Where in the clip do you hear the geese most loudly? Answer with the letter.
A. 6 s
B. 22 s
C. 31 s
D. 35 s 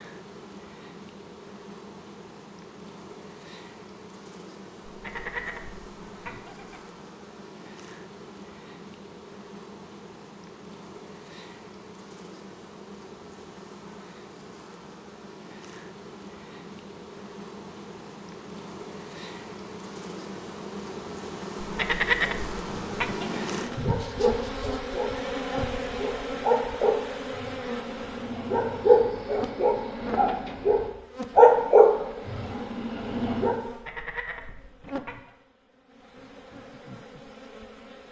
B.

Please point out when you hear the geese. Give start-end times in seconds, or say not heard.
4.8-6.8, 21.6-23.4, 33.6-35.3.